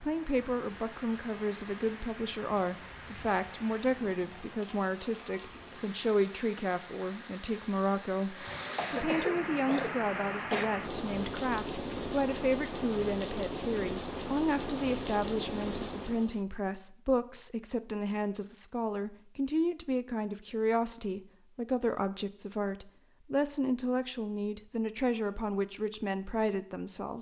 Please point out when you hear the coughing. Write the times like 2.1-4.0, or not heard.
8.8-10.7.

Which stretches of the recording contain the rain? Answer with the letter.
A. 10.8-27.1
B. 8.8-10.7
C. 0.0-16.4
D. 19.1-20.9
C.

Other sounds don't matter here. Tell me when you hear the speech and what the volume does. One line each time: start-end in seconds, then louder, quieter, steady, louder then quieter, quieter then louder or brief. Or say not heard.
0.0-27.1 steady.